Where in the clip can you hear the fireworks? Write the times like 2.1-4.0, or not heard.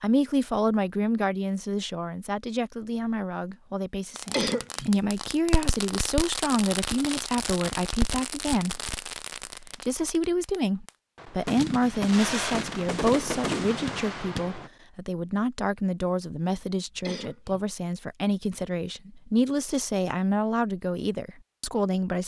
4.2-14.7.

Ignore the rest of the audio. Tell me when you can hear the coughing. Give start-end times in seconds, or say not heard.
4.3-4.9, 17.0-17.6.